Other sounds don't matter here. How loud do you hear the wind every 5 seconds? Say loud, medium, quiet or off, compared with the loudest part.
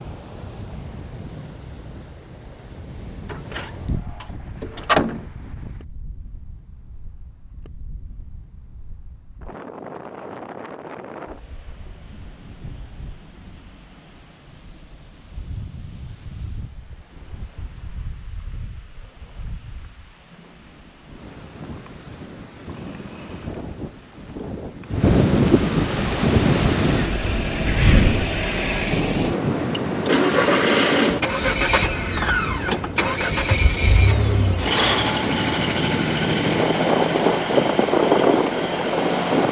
quiet, quiet, quiet, quiet, quiet, loud, medium, loud.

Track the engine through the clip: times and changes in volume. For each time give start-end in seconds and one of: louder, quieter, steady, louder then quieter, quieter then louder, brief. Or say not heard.
25.9-39.4 louder then quieter.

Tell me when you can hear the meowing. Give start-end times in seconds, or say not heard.
not heard.